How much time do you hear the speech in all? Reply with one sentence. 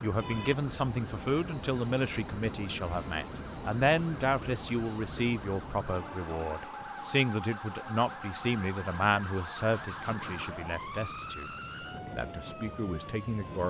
You can hear the speech for 13 seconds altogether.